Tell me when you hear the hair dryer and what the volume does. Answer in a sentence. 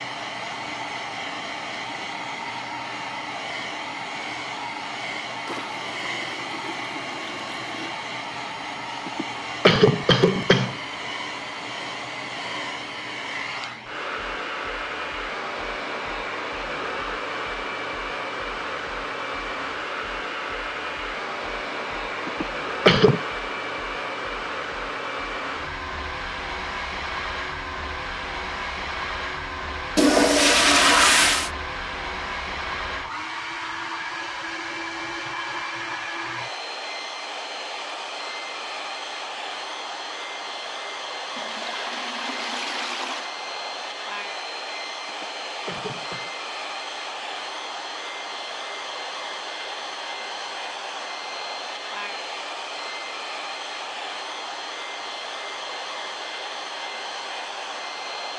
The hair dryer can be heard from 0.0 to 58.3 s, at a steady volume.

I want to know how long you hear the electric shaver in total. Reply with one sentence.
You can't hear the electric shaver here.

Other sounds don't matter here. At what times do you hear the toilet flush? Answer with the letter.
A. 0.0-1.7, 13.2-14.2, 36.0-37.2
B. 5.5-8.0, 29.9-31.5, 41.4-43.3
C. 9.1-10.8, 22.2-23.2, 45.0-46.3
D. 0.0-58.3
B.